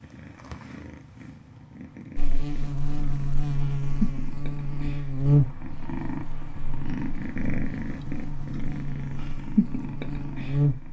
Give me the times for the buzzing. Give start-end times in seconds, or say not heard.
2.1-10.8.